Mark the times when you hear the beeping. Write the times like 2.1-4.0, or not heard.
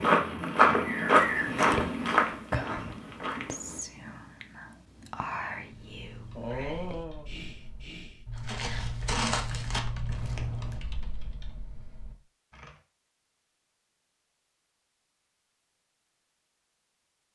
not heard.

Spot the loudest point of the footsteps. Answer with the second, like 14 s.
1 s.